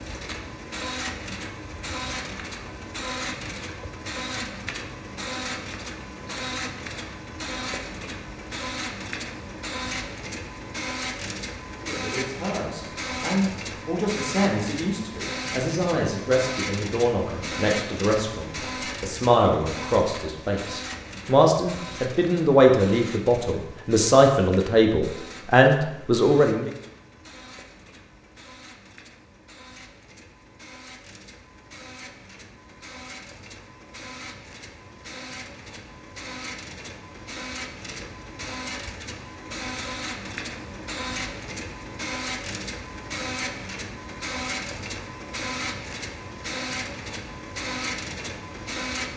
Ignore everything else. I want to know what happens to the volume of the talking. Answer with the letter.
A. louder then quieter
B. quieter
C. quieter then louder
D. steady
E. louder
E.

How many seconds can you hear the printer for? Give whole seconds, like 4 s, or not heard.
49 s.